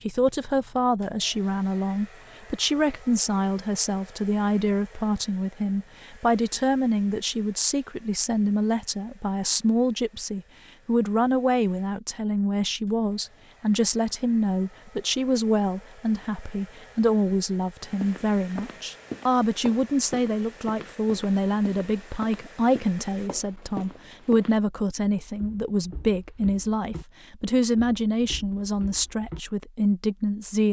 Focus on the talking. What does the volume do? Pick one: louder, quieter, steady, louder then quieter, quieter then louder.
steady.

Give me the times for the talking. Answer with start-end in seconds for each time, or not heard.
0.1-30.6.